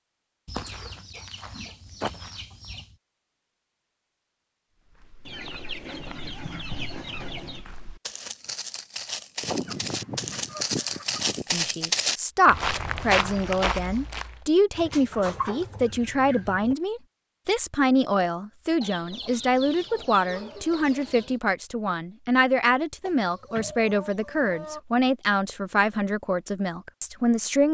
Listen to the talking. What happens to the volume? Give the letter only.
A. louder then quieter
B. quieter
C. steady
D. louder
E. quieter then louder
C.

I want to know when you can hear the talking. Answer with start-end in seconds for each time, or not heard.
11.5-27.6.